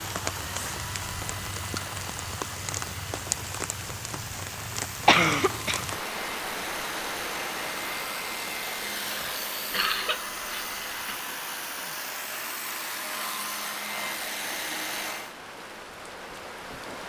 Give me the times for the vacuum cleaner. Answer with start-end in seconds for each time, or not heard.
0.0-15.3.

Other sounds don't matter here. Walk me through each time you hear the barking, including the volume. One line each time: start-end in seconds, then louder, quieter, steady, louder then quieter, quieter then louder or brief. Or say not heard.
not heard.